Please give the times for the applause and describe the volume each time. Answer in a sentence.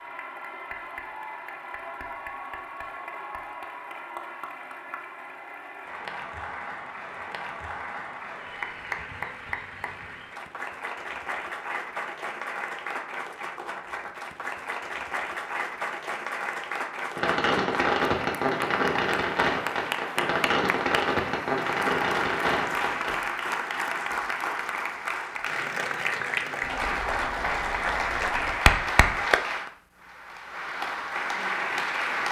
You can hear the applause from 0.0 to 32.2 s, getting louder.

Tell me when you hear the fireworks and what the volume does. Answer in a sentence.
The fireworks can be heard from 17.1 to 23.3 s, at a steady volume.